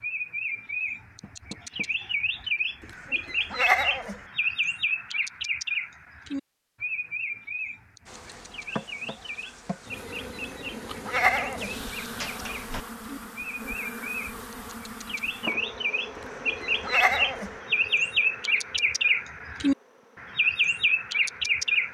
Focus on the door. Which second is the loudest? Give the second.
12 s.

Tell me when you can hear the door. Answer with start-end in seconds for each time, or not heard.
1.2-1.9, 11.6-12.8.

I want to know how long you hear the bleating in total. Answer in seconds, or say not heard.
4 s.